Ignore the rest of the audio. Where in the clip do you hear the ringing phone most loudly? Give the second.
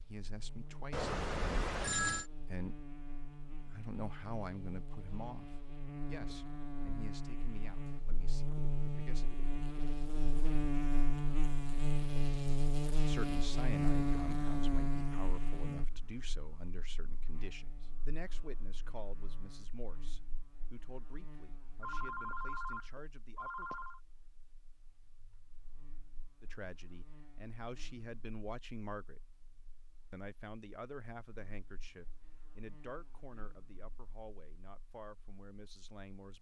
2 s.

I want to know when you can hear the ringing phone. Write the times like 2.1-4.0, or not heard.
0.9-2.2, 21.8-24.0.